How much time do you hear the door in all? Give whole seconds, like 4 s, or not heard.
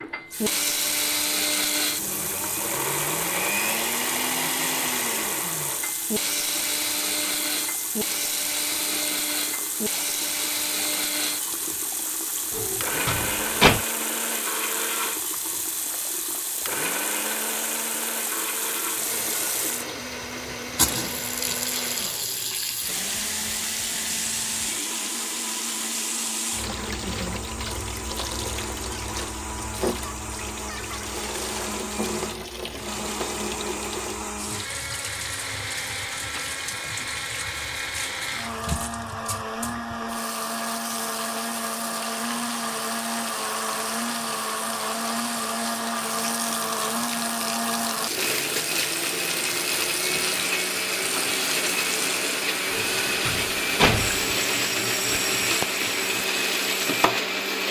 3 s.